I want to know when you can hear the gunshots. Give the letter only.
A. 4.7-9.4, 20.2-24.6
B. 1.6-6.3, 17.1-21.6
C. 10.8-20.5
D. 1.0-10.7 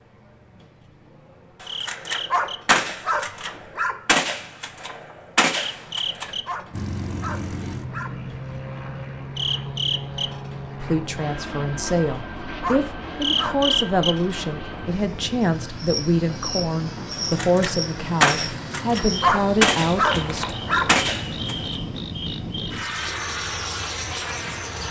B.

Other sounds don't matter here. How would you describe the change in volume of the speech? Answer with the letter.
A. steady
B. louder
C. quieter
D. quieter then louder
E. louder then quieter
A.